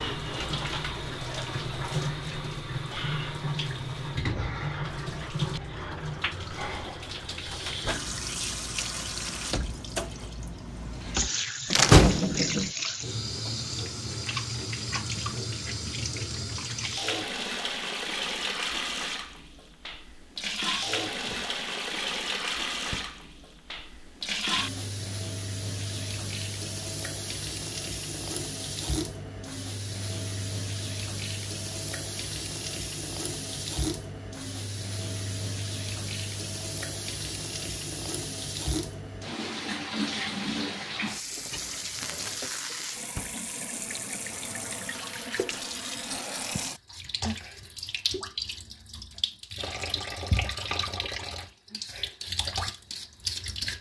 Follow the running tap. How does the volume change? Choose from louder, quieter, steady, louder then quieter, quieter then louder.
steady.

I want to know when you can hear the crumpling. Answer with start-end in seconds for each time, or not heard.
41.8-43.0.